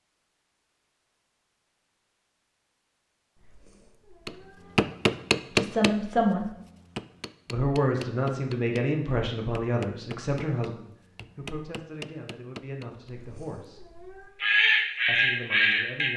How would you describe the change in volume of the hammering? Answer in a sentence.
The loudness of the hammering goes down.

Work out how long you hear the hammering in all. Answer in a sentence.
The hammering can be heard for 9 seconds in total.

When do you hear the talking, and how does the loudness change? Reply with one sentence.
You can hear the talking briefly from 5.5 to 6.5 s; from 7.5 to 13.8 s, getting quieter; and briefly from 15.1 to 16.1 s.